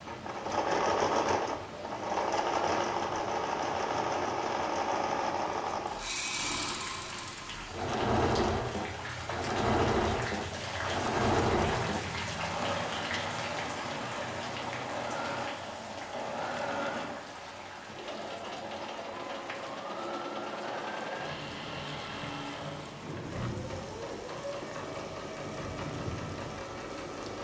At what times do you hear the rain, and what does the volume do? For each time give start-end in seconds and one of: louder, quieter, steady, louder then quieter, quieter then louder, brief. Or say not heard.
0.0-27.3 louder then quieter.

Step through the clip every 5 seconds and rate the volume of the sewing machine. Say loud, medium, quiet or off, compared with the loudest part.
loud, loud, loud, medium, medium, medium.